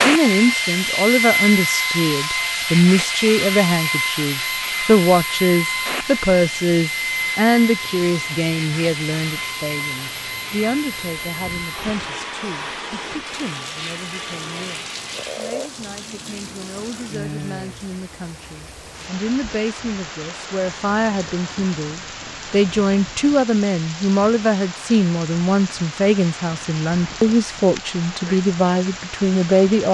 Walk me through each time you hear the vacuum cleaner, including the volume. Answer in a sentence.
The vacuum cleaner can be heard from 0.0 to 15.6 s, getting quieter.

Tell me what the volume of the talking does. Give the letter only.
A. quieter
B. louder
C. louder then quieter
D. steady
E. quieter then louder
E.